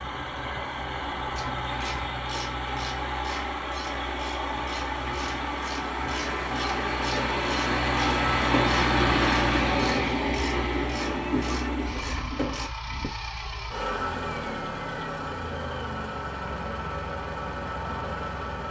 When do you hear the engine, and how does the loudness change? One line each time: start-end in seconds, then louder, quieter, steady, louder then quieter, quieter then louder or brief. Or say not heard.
0.0-18.6 louder then quieter.